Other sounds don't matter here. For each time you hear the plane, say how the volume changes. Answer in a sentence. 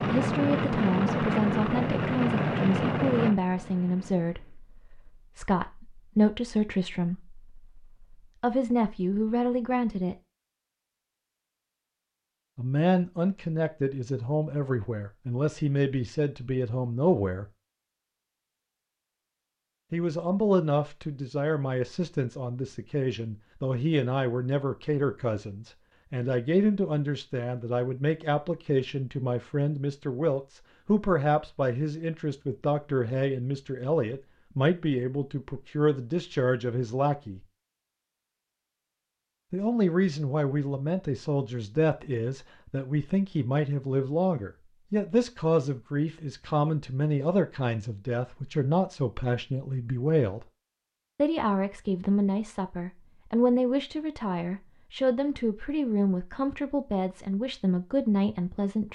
The plane can be heard from 0.0 to 4.6 s, getting quieter.